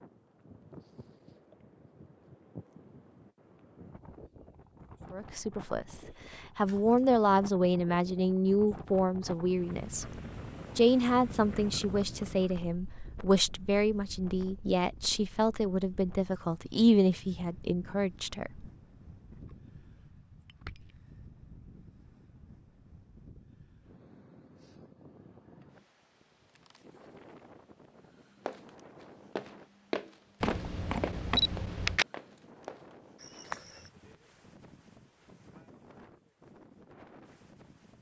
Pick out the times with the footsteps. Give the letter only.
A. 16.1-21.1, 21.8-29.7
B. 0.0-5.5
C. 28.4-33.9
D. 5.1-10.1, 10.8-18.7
C.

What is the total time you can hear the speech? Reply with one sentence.
The speech can be heard for 13 seconds in total.